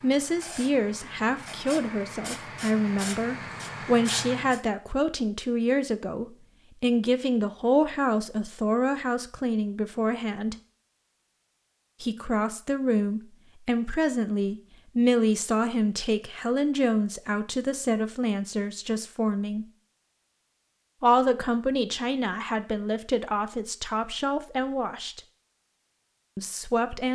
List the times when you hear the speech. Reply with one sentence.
You can hear the speech from 0.0 to 10.6 s, from 12.0 to 19.6 s, from 21.0 to 25.2 s and from 26.4 to 27.1 s.